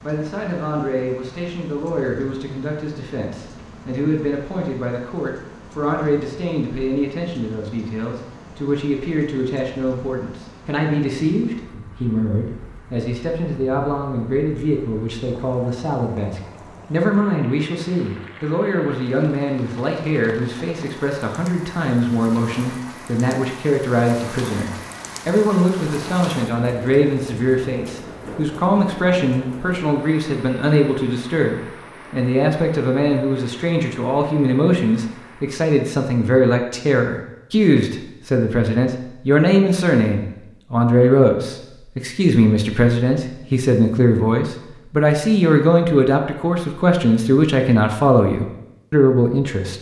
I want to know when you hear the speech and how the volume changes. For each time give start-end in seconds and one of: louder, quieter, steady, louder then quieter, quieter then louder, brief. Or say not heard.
0.0-49.7 louder.